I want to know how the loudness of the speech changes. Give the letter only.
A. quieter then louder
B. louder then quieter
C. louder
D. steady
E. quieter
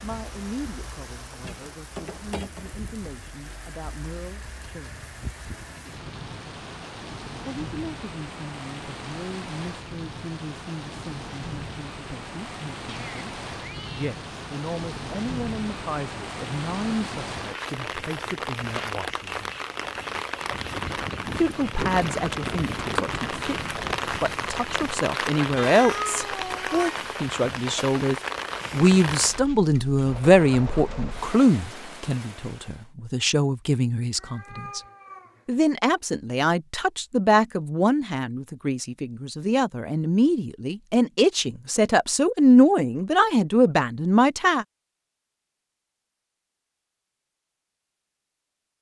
C.